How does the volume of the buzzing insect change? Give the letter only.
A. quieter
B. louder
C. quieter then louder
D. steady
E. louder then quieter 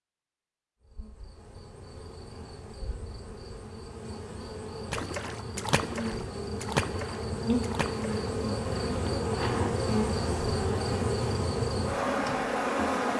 B.